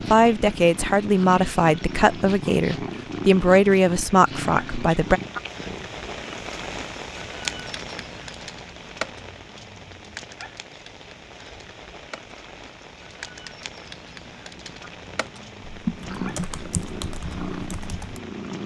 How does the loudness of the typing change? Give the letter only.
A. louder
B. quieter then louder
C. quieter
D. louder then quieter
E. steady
B.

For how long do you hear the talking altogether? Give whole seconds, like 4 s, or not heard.
5 s.